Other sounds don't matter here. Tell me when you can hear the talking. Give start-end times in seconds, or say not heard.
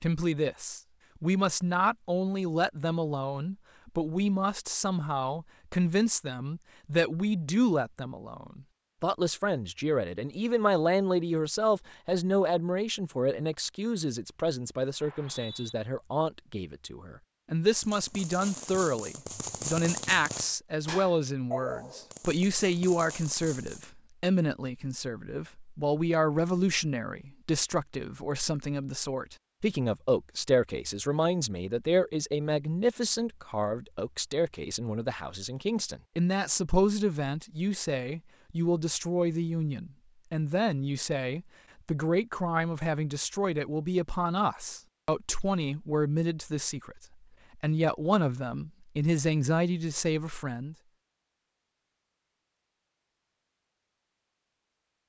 0.0-50.8.